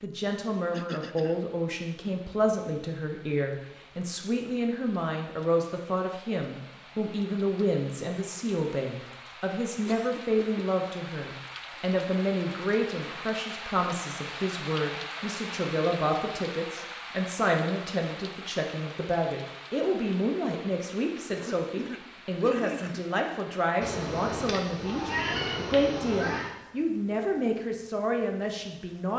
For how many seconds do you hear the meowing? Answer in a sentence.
You can hear the meowing for 3 seconds altogether.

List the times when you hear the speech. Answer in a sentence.
The speech can be heard from 0.0 to 29.1 s.